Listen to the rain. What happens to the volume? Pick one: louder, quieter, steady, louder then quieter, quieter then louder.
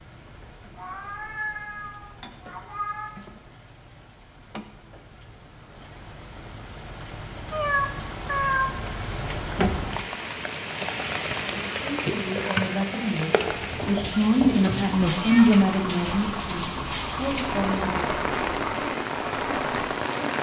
louder.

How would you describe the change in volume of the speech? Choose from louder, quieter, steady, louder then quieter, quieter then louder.
louder then quieter.